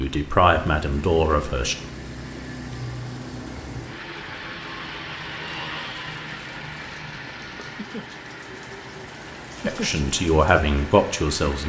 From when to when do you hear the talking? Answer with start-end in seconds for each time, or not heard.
0.0-1.8, 9.7-11.6.